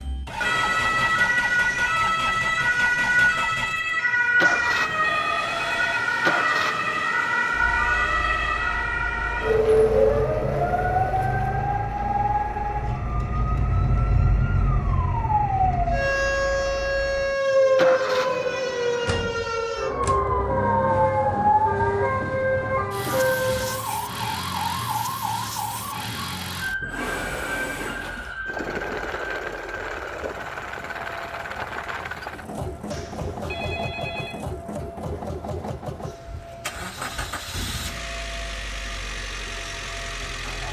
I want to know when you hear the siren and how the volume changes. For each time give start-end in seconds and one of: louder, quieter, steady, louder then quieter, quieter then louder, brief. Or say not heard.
0.0-40.6 quieter.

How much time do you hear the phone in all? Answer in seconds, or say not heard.
3 s.